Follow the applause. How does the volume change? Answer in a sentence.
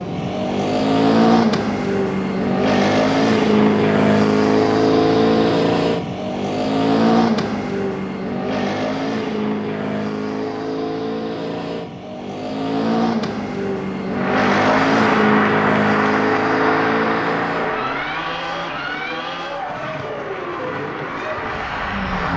The loudness of the applause goes down, then up.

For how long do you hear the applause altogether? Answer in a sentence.
The applause can be heard for 8 seconds in total.